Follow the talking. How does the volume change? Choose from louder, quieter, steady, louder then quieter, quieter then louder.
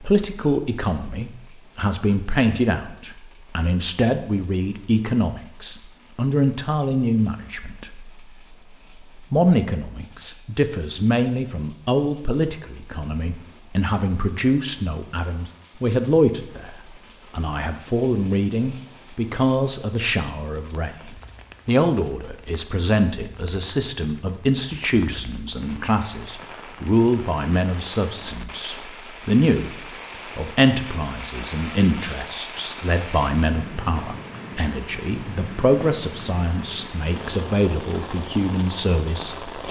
steady.